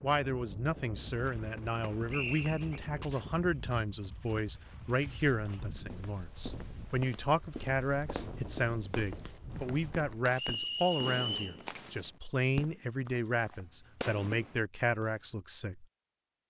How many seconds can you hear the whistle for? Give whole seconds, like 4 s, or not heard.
2 s.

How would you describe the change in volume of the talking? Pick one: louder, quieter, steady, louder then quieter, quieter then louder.
steady.